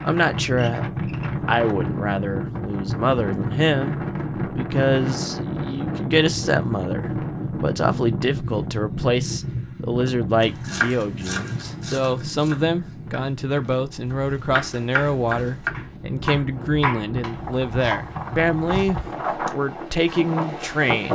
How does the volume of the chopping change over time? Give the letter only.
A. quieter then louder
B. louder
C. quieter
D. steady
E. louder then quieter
A.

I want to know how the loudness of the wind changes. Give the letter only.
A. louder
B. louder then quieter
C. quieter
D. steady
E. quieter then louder
E.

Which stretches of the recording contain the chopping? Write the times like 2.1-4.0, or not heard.
10.4-18.1.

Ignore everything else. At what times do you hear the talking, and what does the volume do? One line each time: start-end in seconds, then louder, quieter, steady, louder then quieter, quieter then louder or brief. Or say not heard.
0.0-0.8 brief
1.4-21.1 steady.